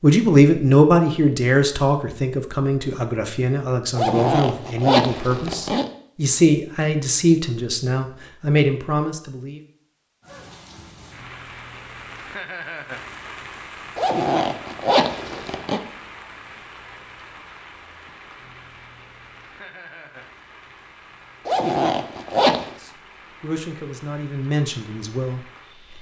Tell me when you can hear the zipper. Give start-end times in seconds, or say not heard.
4.0-5.9, 13.9-15.8, 21.4-22.7.